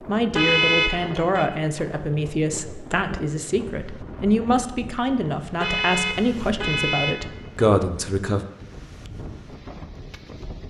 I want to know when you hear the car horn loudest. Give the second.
1 s.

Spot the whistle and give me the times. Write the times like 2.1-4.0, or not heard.
not heard.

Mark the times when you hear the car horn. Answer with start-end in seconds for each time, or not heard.
0.3-1.4, 5.6-7.6.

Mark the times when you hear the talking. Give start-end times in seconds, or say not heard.
0.1-8.4.